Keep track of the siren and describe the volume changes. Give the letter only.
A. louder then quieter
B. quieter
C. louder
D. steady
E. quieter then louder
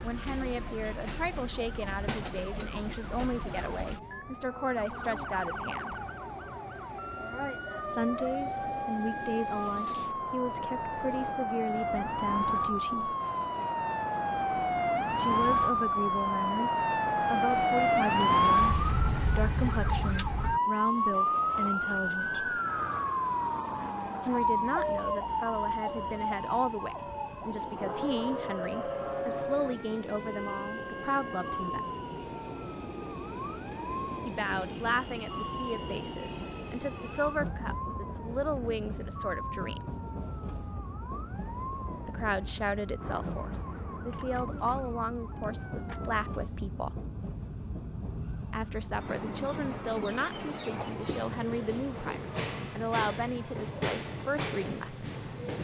A.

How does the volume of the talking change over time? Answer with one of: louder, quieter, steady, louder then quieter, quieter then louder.
steady.